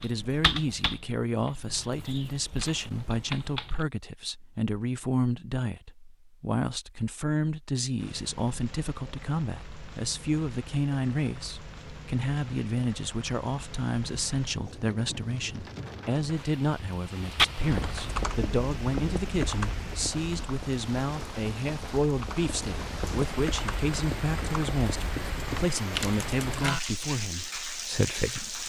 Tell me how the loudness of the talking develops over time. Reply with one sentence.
The volume of the talking stays about the same.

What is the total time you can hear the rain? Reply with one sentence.
You can hear the rain for 21 seconds altogether.